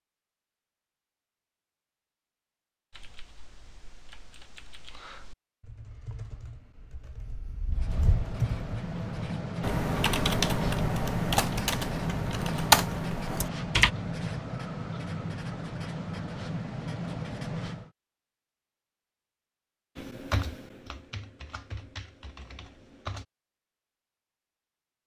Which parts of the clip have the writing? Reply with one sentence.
You can hear the writing from 7.7 to 17.9 s.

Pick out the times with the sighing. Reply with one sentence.
The sighing can't be heard in this clip.